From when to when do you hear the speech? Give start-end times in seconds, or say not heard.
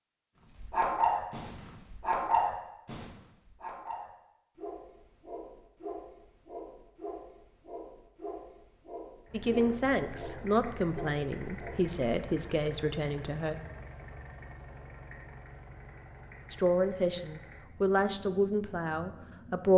9.3-13.6, 16.4-19.7.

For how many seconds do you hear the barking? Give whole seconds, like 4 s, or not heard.
11 s.